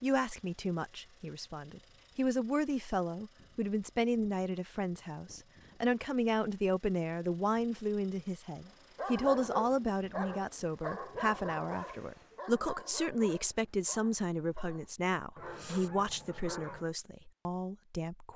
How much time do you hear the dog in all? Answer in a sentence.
The dog can be heard for 8 seconds in total.